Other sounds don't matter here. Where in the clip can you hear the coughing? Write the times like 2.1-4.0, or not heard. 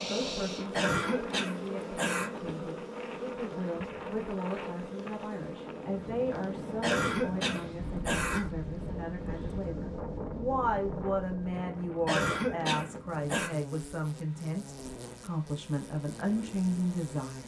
0.7-2.3, 6.8-8.6, 12.1-13.5.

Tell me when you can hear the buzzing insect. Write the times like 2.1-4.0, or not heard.
0.0-8.0, 12.8-17.4.